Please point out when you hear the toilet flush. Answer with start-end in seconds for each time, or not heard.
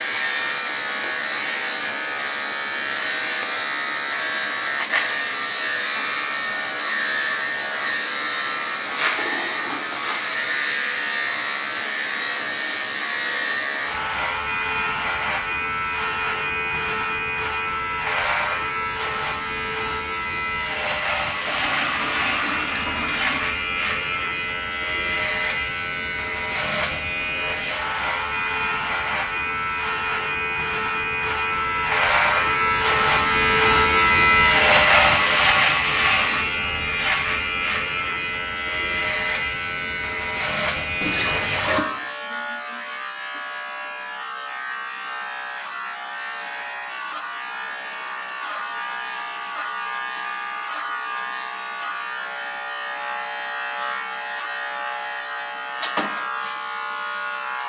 8.8-10.2, 21.4-23.5, 41.0-41.9.